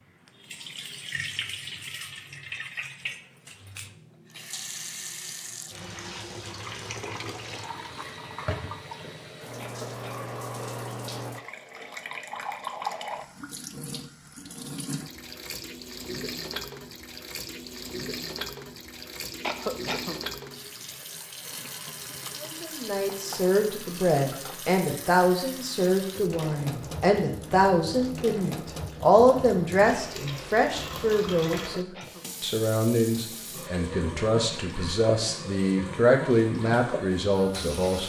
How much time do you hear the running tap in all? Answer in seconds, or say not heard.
38 s.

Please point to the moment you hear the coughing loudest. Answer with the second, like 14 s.
20 s.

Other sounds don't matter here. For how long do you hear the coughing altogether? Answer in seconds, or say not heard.
2 s.